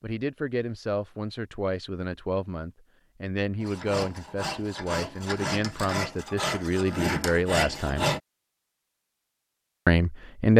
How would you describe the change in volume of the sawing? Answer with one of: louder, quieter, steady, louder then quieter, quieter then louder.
louder.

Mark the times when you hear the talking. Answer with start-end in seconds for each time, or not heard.
0.0-8.1, 9.8-10.5.